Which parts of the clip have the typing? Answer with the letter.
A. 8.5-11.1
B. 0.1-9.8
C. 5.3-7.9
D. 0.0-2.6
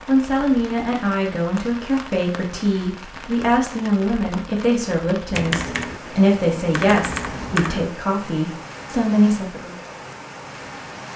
C.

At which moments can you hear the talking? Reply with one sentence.
You can hear the talking from 0.1 to 9.8 s.